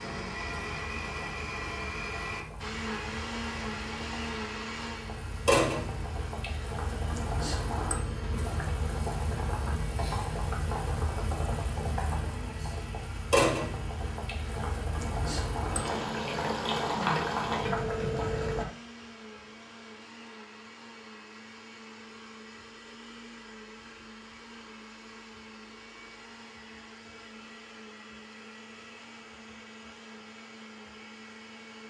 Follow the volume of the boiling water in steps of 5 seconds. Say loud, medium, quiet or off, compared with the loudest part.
quiet, loud, loud, loud, off, off, off.